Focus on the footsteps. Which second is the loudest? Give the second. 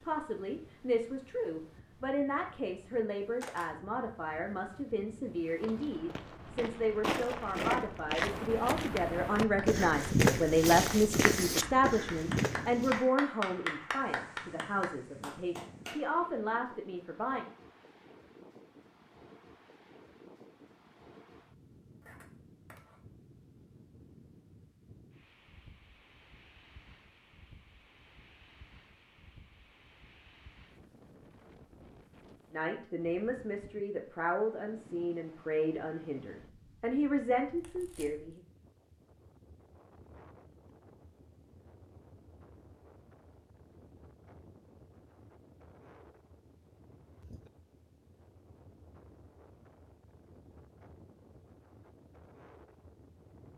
10 s.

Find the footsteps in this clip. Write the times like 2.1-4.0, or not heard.
5.5-13.1.